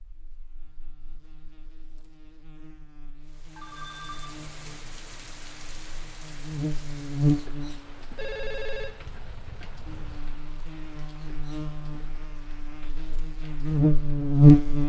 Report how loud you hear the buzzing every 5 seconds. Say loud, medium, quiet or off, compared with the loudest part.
quiet, medium, loud.